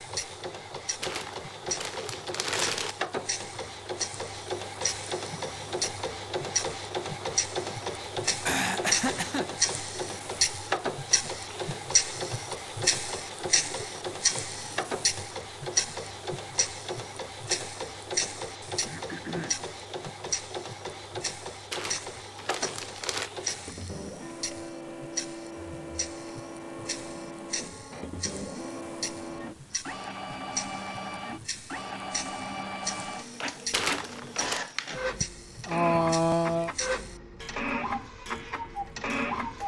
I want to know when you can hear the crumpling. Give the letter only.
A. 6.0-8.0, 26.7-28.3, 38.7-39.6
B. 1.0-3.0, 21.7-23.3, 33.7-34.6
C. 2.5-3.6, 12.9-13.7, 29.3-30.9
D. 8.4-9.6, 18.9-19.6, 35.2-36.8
B.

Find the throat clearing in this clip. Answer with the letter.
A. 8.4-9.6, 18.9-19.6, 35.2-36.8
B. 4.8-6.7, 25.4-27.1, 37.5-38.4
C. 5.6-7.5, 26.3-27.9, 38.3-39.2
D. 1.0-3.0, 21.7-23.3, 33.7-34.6
A.